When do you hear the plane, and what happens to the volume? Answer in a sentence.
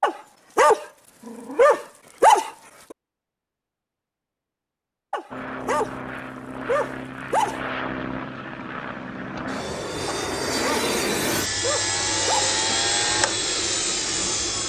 The plane can be heard from 5.3 to 14.6 s, getting louder.